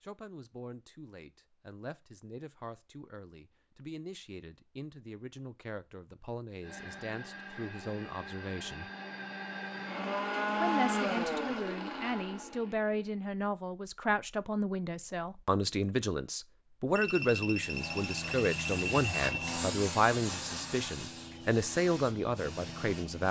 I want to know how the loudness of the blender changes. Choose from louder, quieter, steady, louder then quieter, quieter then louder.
louder then quieter.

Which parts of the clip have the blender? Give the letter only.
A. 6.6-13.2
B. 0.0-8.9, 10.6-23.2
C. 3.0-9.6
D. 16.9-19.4
A.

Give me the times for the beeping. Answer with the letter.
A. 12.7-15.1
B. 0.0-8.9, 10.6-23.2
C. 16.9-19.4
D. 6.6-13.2
C.